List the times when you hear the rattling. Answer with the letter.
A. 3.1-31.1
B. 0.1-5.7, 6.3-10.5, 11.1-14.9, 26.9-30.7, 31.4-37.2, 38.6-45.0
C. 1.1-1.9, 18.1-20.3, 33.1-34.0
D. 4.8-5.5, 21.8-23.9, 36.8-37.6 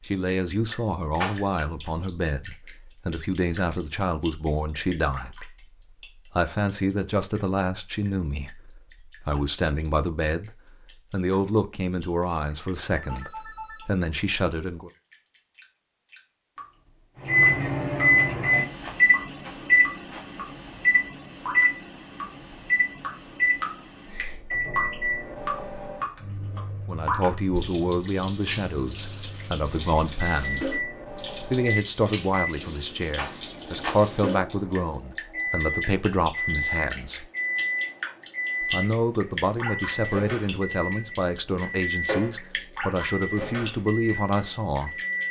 C.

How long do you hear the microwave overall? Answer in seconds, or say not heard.
28 s.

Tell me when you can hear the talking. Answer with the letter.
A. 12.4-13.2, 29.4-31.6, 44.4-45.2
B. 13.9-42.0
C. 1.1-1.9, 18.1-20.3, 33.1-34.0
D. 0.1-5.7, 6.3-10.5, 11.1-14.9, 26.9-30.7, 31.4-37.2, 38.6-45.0
D.